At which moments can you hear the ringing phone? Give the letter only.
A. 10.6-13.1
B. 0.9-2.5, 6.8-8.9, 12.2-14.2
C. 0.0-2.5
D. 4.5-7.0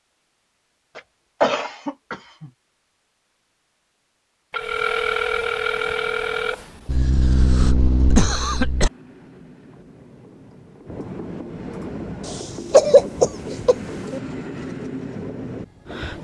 D.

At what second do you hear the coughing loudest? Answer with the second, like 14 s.
13 s.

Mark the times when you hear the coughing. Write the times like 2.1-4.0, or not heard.
0.9-2.5, 6.8-8.9, 12.2-14.2.